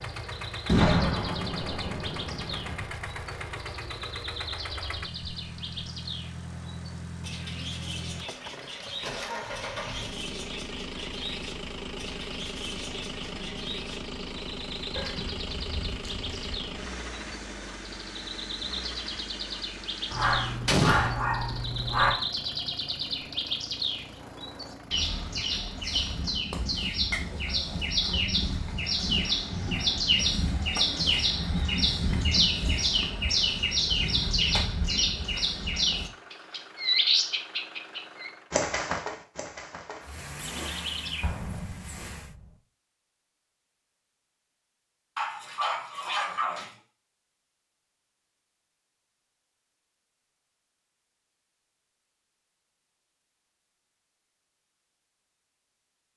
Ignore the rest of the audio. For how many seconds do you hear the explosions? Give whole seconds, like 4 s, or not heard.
4 s.